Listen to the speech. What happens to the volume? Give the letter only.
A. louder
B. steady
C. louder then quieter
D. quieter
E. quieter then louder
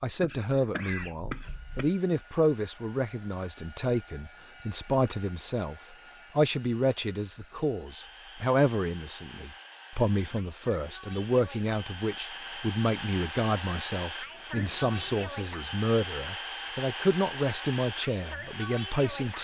B.